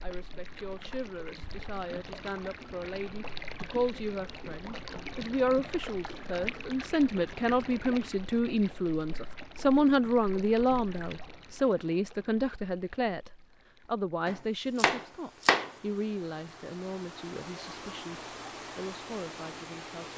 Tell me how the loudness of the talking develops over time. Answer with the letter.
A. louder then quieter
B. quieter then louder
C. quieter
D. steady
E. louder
A.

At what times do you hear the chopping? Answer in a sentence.
You can hear the chopping from 14.2 to 15.7 s.